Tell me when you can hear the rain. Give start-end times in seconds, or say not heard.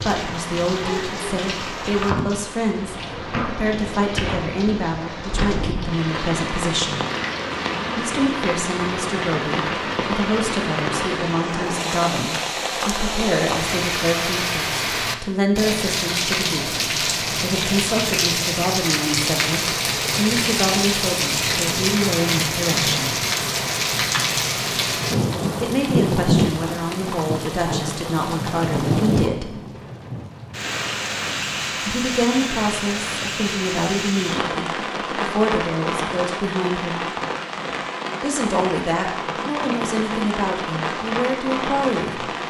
0.0-42.4.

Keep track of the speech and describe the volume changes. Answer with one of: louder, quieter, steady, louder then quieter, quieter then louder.
steady.